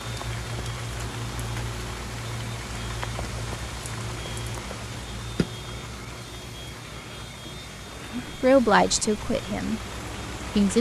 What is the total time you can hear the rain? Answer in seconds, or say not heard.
11 s.